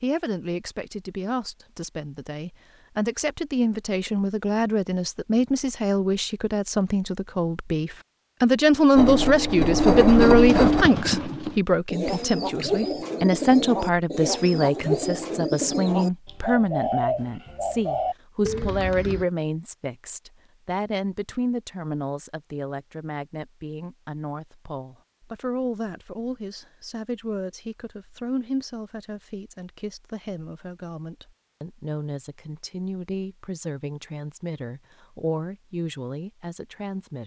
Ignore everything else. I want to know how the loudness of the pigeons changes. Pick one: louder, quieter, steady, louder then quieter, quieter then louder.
steady.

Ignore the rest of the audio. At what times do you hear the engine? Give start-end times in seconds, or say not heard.
8.9-10.8.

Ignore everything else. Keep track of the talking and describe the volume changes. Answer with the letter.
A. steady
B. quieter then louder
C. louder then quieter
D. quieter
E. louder
C.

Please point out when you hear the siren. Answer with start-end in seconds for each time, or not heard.
not heard.